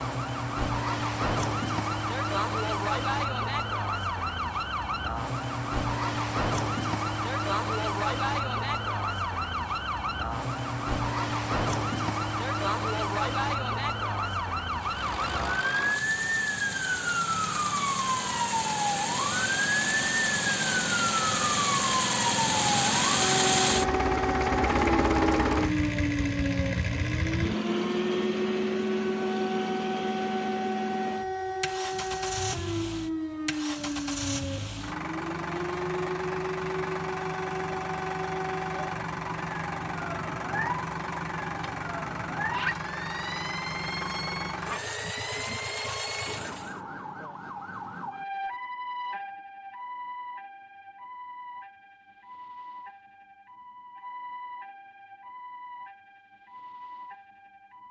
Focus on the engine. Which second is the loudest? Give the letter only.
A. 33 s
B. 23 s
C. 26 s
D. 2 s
B.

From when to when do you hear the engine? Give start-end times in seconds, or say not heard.
14.7-46.8.